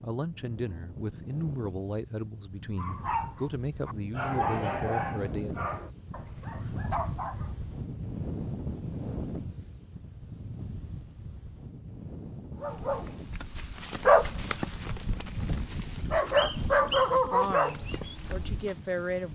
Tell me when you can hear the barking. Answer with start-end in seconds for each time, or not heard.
2.8-7.5, 12.6-18.7.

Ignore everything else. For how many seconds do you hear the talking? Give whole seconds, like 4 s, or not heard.
8 s.